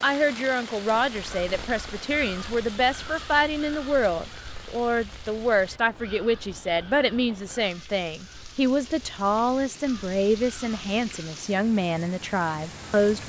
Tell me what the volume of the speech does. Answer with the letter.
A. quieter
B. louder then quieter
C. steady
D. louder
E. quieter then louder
C.